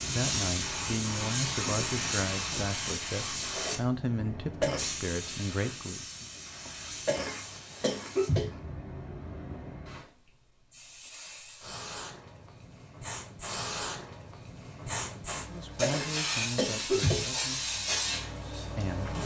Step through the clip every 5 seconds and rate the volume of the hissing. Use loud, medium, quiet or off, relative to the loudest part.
loud, medium, medium, loud.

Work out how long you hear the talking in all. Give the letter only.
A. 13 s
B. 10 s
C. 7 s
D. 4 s
B.